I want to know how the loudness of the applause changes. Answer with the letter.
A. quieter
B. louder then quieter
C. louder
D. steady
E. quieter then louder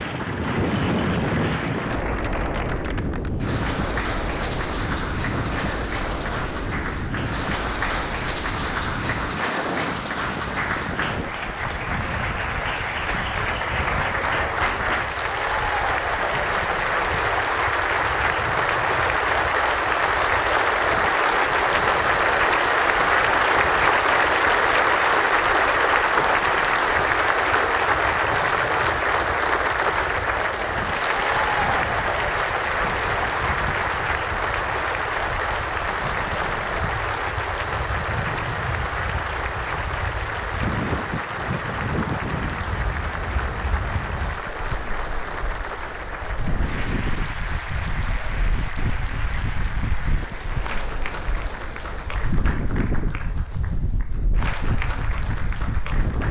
B.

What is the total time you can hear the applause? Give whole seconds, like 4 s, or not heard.
56 s.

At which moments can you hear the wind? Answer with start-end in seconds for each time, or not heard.
0.0-56.2.